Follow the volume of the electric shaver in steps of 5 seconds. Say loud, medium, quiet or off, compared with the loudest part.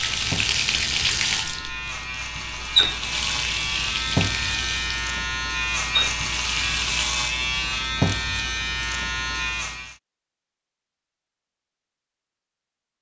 loud, loud, off.